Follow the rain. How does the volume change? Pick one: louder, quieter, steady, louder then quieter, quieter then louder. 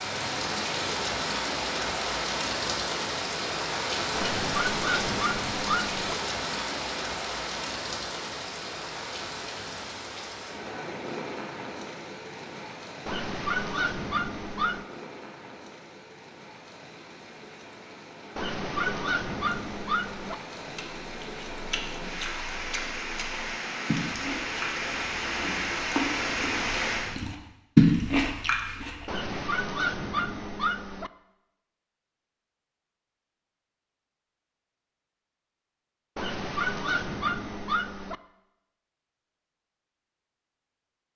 quieter then louder.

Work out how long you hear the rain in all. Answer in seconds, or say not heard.
27 s.